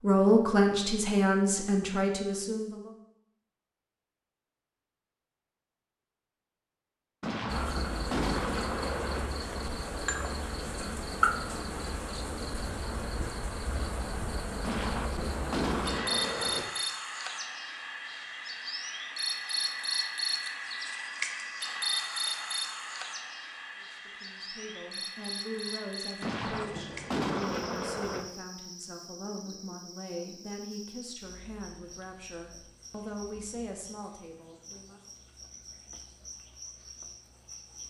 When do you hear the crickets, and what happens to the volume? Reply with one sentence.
The crickets can be heard from 7.5 to 37.8 s, getting quieter.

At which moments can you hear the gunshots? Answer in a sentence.
You can hear the gunshots from 7.2 to 9.2 s, from 14.6 to 16.6 s and from 26.2 to 28.2 s.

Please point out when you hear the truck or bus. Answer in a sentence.
You can't hear the truck or bus here.